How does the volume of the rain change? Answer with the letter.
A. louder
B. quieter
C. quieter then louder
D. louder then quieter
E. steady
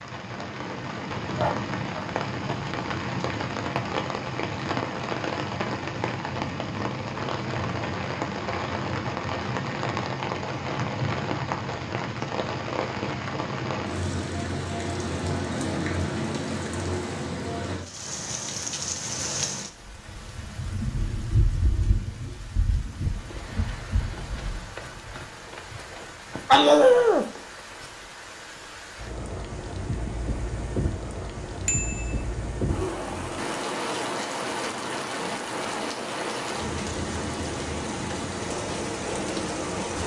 C.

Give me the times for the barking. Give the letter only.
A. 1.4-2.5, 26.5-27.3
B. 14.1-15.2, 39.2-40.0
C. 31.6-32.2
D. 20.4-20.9
A.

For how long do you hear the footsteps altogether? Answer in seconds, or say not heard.
not heard.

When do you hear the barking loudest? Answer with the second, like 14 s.
27 s.